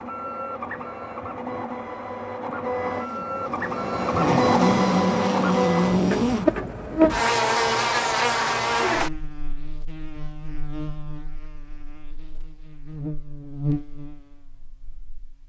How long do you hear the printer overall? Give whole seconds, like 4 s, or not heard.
7 s.